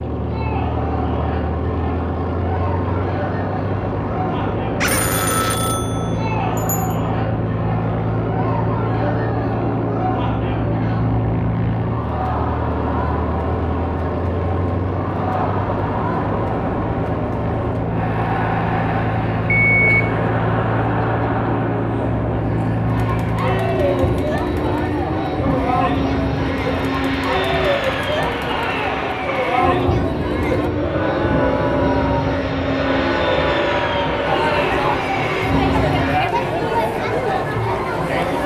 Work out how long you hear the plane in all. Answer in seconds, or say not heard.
36 s.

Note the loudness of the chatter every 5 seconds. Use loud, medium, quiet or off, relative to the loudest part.
medium, medium, medium, medium, medium, loud, loud, loud.